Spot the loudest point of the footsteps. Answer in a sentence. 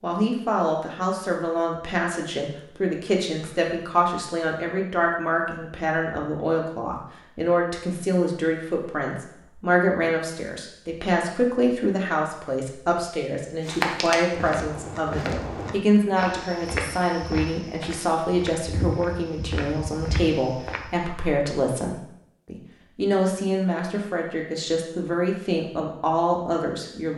The loudest moment of the footsteps is at 14 seconds.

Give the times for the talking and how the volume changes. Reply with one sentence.
You can hear the talking from 0.0 to 27.1 s, at a steady volume.